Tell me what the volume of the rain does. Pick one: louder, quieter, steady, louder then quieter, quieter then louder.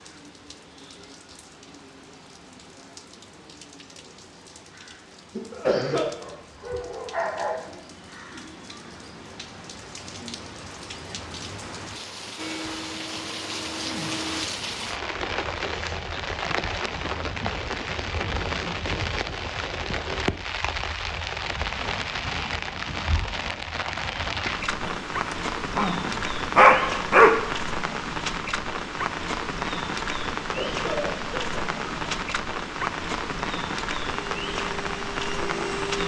louder.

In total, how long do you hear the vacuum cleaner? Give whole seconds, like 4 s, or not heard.
4 s.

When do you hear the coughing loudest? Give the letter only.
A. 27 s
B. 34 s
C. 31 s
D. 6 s
D.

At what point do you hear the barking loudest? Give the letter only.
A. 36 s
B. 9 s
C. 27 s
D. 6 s
C.